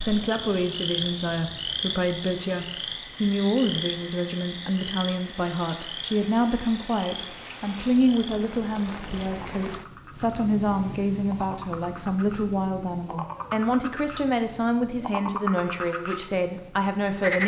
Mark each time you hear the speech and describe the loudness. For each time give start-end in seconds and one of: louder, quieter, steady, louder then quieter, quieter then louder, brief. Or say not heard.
0.0-17.4 steady.